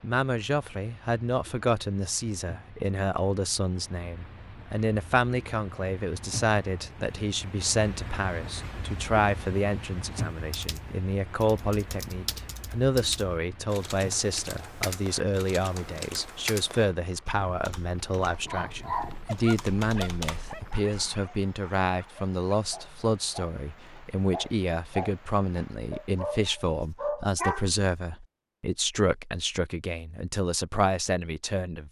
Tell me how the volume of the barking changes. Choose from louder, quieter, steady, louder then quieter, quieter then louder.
quieter then louder.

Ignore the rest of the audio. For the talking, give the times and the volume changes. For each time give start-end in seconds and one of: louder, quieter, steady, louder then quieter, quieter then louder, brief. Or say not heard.
0.0-31.8 steady.